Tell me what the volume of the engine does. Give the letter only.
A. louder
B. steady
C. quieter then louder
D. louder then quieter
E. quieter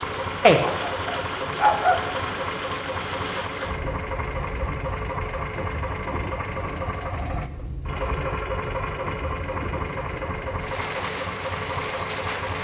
B.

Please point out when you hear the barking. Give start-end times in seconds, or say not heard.
0.4-2.0.